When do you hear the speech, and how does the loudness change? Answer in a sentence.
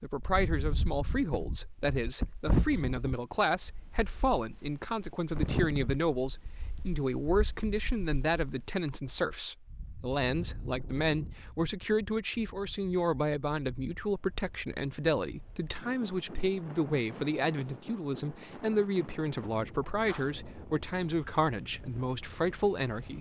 You can hear the speech from 0.0 to 23.1 s, at a steady volume.